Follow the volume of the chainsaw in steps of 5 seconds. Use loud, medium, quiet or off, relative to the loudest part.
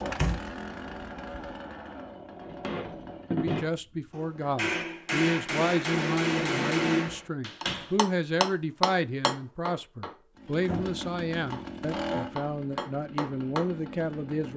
loud, off, loud.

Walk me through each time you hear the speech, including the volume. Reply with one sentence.
The speech can be heard from 3.3 to 14.5 s, at a steady volume.